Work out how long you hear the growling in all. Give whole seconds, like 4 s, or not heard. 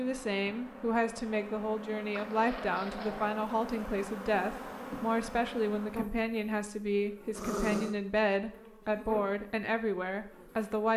2 s.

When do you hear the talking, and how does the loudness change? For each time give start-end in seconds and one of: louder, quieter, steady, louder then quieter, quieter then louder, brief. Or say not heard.
0.0-10.9 steady.